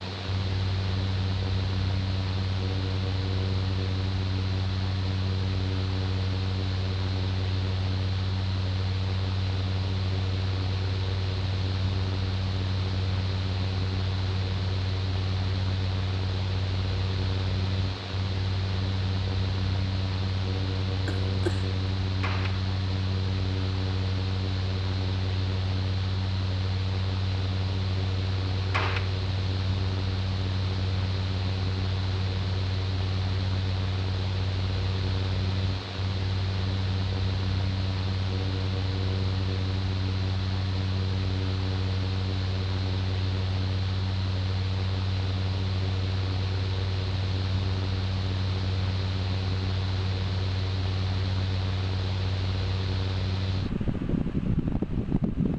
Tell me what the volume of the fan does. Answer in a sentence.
The loudness of the fan stays about the same.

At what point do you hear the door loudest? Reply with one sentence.
The loudest moment of the door is at 29 seconds.